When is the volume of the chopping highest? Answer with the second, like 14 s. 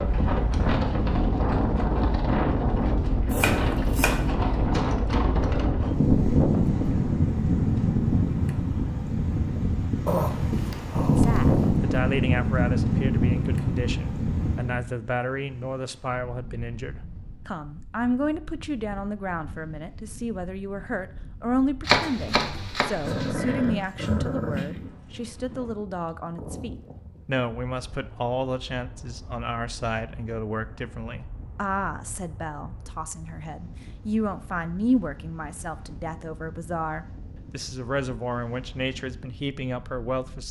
22 s.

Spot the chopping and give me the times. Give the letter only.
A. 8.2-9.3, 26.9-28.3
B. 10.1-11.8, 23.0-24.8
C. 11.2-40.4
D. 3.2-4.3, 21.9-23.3
D.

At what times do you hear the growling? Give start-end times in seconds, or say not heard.
10.1-11.8, 23.0-24.8.